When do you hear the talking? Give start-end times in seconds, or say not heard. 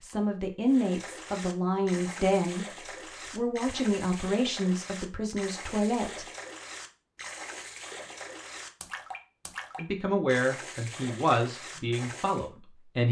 0.0-2.7, 3.3-6.2, 9.8-13.0.